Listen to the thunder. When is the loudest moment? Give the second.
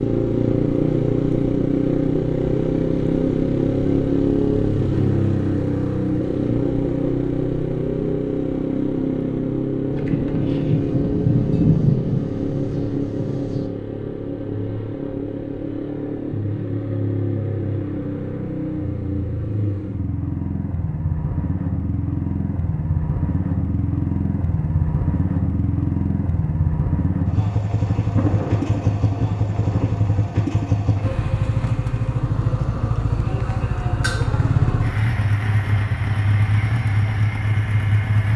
12 s.